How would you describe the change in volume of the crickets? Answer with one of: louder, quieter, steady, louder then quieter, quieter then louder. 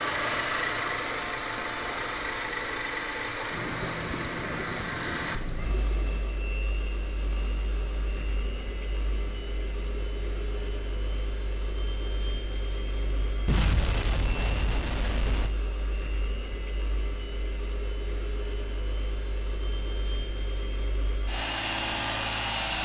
quieter.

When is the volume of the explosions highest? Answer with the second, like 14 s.
14 s.